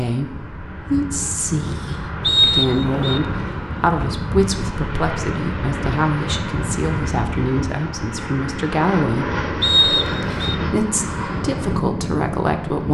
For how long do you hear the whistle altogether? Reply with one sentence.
The whistle can be heard for 2 seconds in total.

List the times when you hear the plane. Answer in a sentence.
The plane can be heard from 0.0 to 12.8 s.